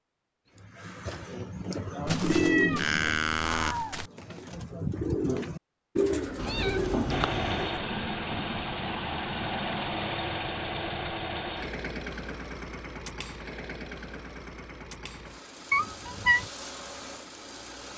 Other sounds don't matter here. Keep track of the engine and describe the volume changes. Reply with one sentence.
The volume of the engine goes down.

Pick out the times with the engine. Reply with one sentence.
You can hear the engine from 7.0 to 17.9 s.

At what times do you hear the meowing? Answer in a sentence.
The meowing can be heard from 2.0 to 4.1 s, from 6.4 to 7.7 s and from 15.7 to 16.5 s.